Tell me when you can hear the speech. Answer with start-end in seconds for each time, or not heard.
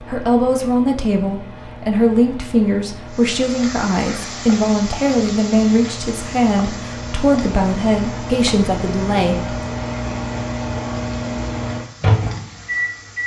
0.1-9.6.